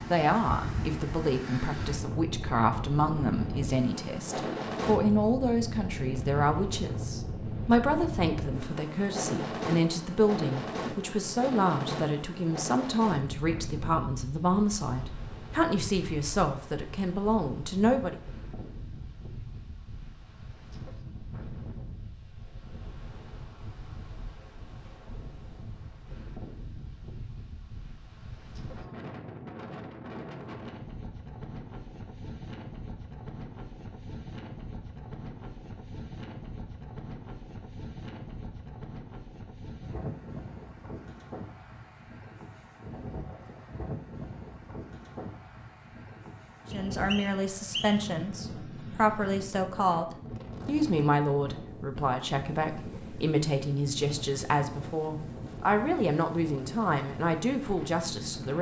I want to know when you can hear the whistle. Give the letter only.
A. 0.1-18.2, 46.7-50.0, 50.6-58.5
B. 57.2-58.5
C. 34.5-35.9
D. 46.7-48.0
D.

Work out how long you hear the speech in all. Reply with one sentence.
You can hear the speech for 29 seconds altogether.